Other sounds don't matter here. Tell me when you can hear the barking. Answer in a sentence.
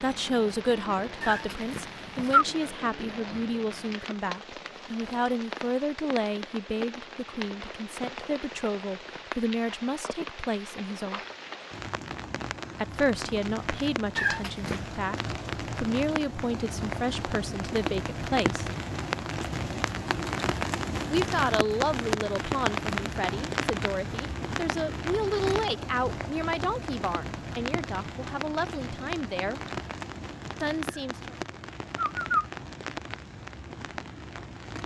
The barking can't be heard in this clip.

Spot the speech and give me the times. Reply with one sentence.
You can hear the speech from 0.0 to 11.2 s, from 12.8 to 18.6 s, from 21.1 to 29.6 s and from 30.6 to 31.4 s.